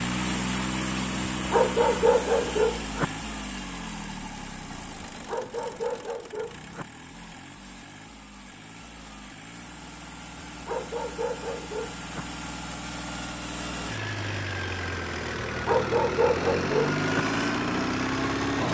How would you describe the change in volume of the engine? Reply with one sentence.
The volume of the engine goes down, then up.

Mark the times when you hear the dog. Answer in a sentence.
The dog can be heard from 1.4 to 3.0 s, from 5.0 to 6.8 s, from 10.6 to 12.2 s and from 15.6 to 17.2 s.